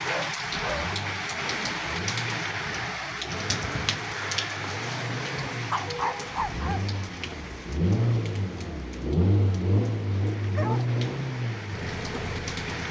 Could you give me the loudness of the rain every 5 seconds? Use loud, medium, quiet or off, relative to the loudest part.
loud, medium, medium.